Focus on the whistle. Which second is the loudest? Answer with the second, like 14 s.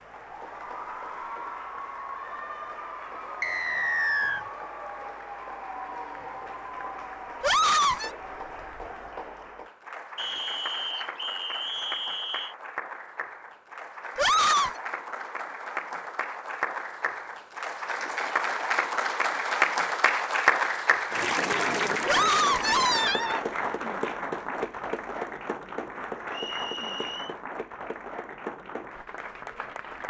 4 s.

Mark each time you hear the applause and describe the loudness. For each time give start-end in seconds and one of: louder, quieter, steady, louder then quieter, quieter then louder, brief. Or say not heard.
0.0-30.0 louder then quieter.